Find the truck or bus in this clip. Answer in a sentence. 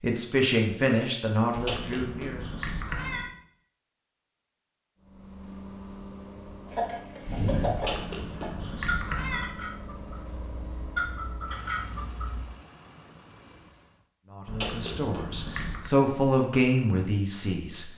The truck or bus can be heard from 5.0 to 14.1 s.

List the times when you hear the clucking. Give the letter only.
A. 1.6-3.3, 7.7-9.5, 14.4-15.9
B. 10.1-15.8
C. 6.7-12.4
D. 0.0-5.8
C.